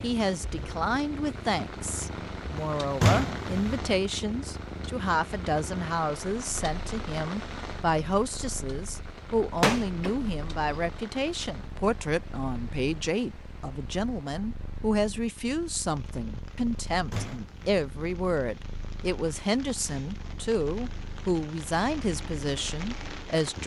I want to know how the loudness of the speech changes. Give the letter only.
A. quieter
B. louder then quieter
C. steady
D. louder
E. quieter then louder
C.